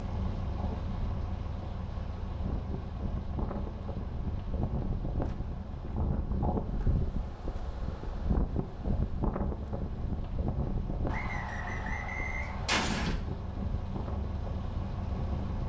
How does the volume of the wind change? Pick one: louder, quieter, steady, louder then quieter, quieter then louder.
louder then quieter.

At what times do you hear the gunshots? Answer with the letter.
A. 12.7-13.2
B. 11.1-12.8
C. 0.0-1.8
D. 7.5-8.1
A.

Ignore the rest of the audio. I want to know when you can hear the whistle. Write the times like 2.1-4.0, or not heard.
11.1-12.8.